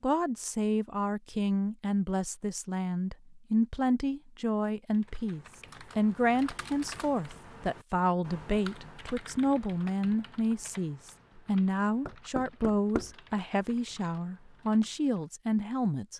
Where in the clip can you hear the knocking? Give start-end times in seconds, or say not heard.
12.1-13.2.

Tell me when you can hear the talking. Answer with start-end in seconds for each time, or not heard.
0.0-16.1.